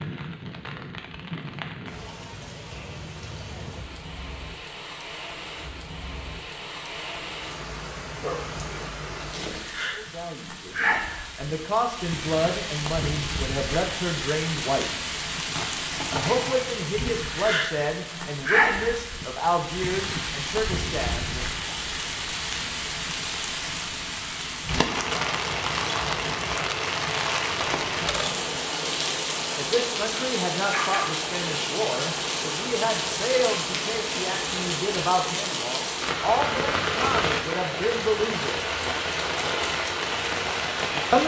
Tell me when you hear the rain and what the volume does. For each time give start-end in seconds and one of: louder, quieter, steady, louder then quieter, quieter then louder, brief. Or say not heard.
0.0-41.2 louder.